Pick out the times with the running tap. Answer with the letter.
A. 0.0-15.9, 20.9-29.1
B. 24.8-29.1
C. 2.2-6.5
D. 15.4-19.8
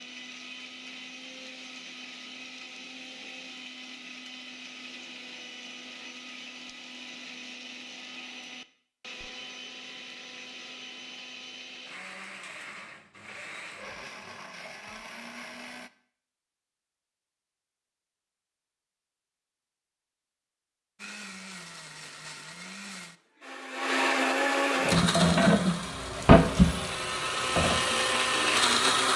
B.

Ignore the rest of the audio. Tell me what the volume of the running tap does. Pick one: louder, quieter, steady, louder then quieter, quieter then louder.
quieter.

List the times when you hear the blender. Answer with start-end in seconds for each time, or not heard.
0.0-15.9, 20.9-29.1.